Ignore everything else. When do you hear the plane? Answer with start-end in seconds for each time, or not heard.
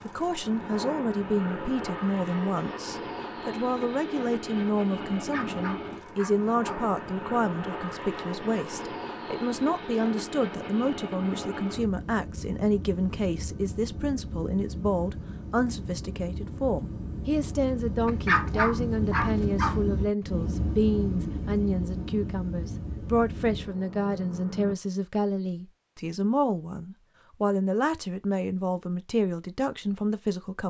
0.0-24.8.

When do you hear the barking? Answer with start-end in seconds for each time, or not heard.
5.1-7.0, 18.1-19.8.